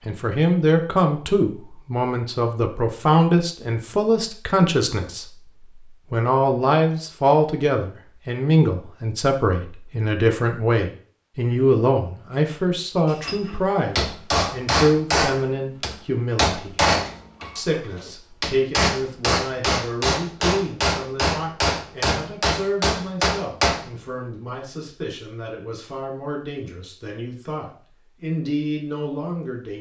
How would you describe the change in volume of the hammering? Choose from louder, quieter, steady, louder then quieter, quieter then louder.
steady.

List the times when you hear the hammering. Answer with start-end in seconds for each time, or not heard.
13.1-23.9.